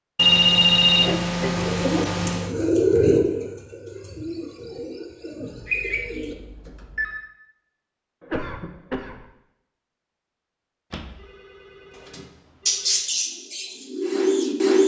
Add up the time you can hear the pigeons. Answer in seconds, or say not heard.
8 s.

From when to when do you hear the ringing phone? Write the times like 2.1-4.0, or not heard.
0.1-2.5, 5.5-7.3, 10.9-13.0.